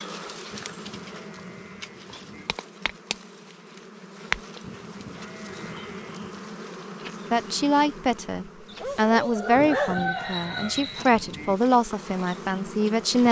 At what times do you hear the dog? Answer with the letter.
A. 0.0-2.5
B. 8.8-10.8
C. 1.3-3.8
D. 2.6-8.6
B.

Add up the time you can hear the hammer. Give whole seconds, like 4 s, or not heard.
not heard.